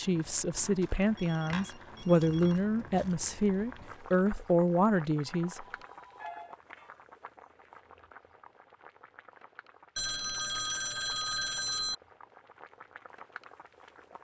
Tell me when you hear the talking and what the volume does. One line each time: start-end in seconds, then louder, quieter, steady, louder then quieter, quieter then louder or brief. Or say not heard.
0.0-5.7 steady.